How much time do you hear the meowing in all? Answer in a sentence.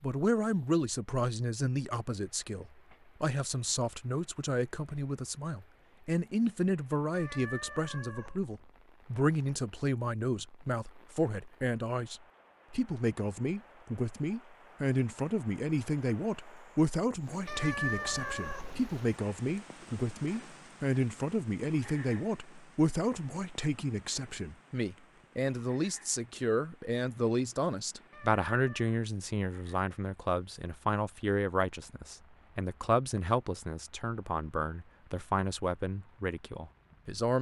You can hear the meowing for 4 seconds altogether.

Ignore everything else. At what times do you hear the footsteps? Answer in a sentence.
You can't hear the footsteps here.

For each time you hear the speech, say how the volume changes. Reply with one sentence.
The speech can be heard from 0.0 to 37.3 s, at a steady volume.